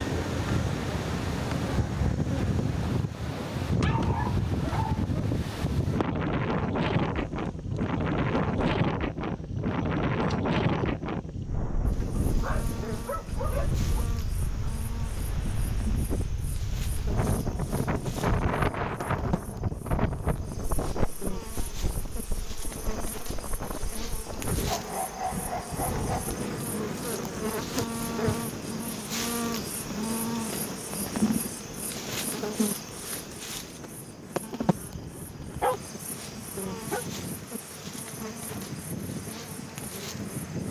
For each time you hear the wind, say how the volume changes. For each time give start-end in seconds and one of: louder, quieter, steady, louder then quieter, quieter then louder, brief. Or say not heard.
0.0-40.6 quieter.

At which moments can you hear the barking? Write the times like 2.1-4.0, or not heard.
3.8-5.0, 12.2-14.1, 24.6-26.4, 34.5-37.0.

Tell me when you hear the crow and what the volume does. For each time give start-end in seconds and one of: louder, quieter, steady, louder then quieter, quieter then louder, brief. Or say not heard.
not heard.